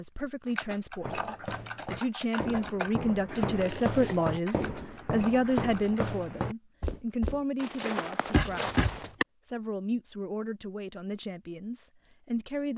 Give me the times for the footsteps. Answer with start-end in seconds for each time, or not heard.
1.0-9.1.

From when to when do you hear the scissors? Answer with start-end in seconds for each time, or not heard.
3.2-4.2, 8.3-9.2.